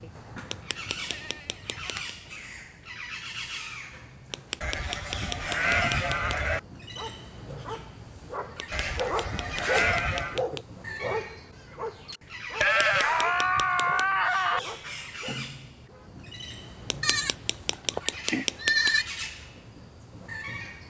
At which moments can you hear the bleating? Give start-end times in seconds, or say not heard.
0.0-2.0, 4.6-6.6, 8.7-10.4, 12.6-14.6, 17.0-19.1.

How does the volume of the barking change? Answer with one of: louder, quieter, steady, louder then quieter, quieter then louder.
louder then quieter.